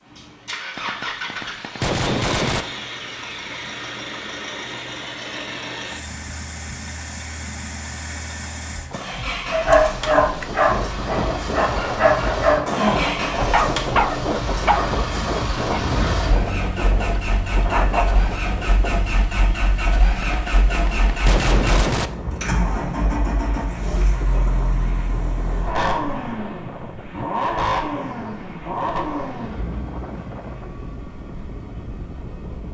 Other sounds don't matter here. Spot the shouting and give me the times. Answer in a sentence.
The shouting can't be heard in this clip.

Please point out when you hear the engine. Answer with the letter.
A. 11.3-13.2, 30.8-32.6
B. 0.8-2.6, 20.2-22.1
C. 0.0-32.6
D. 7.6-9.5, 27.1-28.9
C.